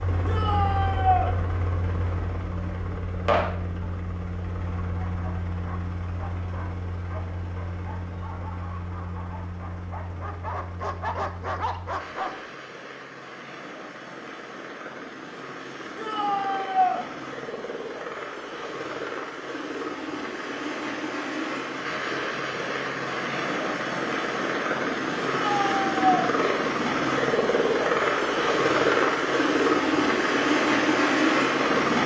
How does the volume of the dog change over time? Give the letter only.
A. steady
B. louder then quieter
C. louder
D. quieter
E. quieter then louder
C.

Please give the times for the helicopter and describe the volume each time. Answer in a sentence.
You can hear the helicopter from 0.0 to 32.0 s, getting quieter then louder.